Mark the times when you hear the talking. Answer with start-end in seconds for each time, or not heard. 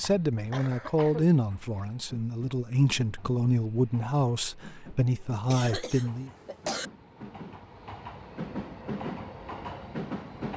0.0-6.3.